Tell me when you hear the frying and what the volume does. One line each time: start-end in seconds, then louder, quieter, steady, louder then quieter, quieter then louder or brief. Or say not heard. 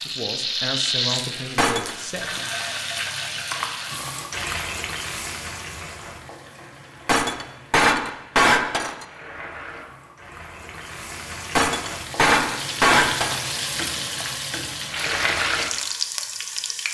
0.0-16.8 quieter then louder.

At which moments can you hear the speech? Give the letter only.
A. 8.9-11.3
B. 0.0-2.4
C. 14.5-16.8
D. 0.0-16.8
B.